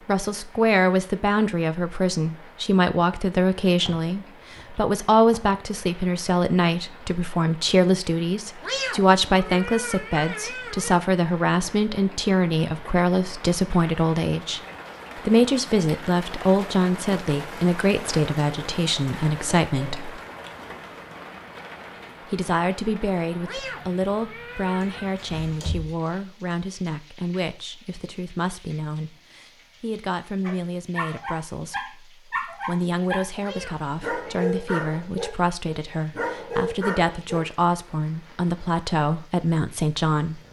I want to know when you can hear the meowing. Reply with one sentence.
You can hear the meowing from 8.6 to 11.0 s, from 23.4 to 25.1 s and from 33.4 to 34.4 s.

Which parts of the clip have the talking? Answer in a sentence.
You can hear the talking from 0.1 to 20.2 s and from 22.2 to 40.4 s.